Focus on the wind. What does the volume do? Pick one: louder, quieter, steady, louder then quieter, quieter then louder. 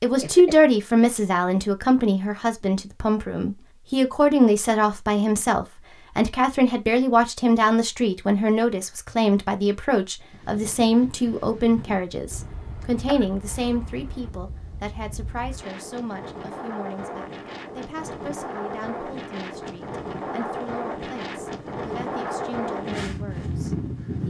louder.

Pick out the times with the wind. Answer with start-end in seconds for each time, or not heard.
10.3-24.2.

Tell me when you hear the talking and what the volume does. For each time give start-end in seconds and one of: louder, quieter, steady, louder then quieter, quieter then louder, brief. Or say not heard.
0.0-24.2 quieter.